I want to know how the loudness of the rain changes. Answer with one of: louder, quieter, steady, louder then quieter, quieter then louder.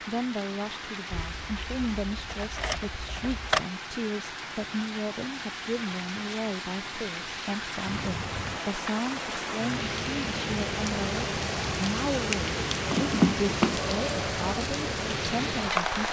louder.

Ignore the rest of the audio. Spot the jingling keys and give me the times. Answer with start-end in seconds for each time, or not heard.
1.1-3.6, 12.8-13.8.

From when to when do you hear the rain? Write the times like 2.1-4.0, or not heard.
0.0-16.0.